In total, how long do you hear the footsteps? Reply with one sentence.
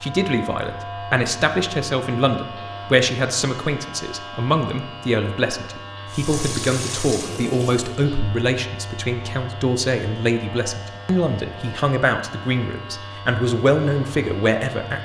The footsteps can't be heard in this clip.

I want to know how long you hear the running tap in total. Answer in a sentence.
You can hear the running tap for 2 seconds altogether.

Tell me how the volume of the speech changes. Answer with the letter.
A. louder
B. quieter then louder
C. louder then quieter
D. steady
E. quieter
D.